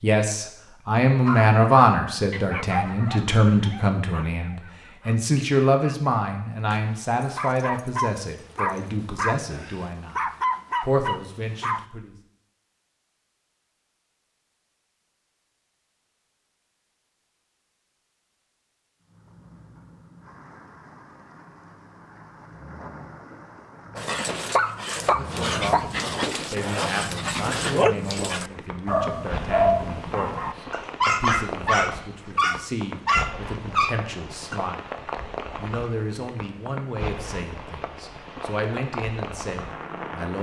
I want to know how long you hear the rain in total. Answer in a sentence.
The rain can be heard for 21 seconds in total.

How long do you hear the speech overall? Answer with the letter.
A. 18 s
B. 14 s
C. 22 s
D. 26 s
D.